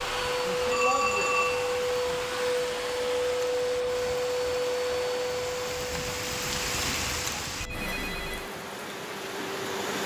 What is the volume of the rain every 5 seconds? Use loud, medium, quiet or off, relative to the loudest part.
medium, loud.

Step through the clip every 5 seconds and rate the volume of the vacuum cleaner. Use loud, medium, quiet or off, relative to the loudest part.
loud, medium.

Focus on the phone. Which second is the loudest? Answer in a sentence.
The volume of the phone peaks at 1 second.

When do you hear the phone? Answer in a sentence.
The phone can be heard from 0.7 to 1.9 s and from 7.6 to 8.5 s.